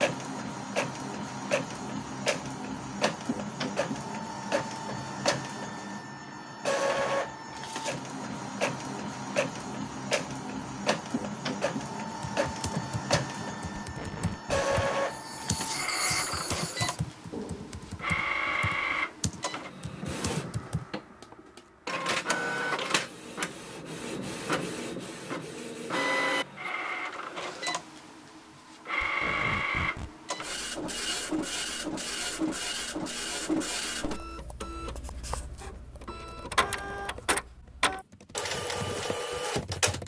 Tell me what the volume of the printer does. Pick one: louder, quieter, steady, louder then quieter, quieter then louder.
steady.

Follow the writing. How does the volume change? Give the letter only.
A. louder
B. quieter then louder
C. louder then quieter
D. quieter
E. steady
D.